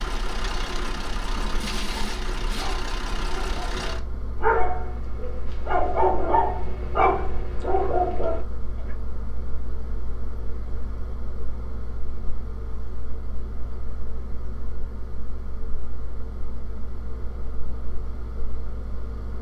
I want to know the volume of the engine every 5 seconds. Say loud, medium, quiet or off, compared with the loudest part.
loud, medium, medium, medium.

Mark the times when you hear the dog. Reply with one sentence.
You can hear the dog from 1.9 to 8.4 s.